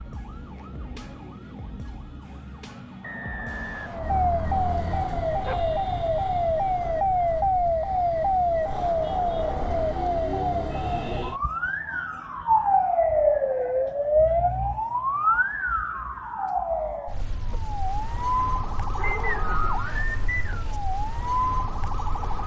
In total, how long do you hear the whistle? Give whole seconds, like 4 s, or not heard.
3 s.